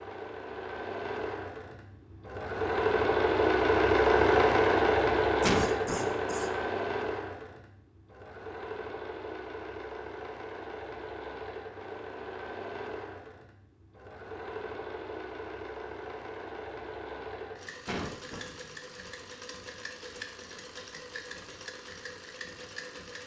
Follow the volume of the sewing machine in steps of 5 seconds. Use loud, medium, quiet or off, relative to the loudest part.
loud, medium, quiet, quiet, quiet.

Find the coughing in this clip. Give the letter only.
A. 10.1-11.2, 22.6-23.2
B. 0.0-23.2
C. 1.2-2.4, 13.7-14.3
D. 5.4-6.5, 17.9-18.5
D.